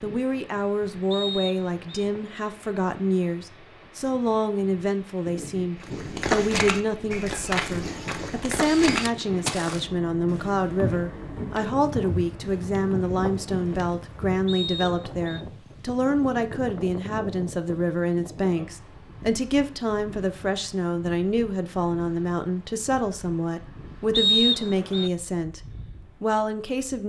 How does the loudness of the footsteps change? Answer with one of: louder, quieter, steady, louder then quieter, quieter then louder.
quieter.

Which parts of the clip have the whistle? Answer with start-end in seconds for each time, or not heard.
1.1-2.0, 14.4-15.4, 24.1-25.1.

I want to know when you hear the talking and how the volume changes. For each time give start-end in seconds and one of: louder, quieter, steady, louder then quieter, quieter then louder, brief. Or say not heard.
0.0-25.6 steady
26.2-27.0 brief.